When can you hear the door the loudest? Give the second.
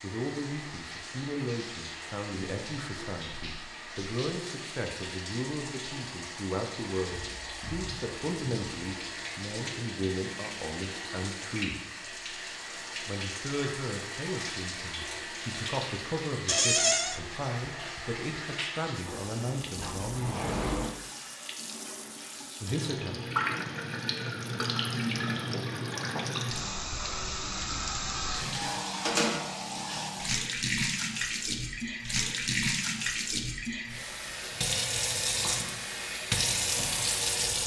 17 s.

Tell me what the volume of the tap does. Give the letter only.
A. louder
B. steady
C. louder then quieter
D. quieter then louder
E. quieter
A.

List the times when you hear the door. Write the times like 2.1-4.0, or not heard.
16.4-17.2, 19.1-20.9.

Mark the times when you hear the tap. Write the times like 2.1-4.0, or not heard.
0.0-37.6.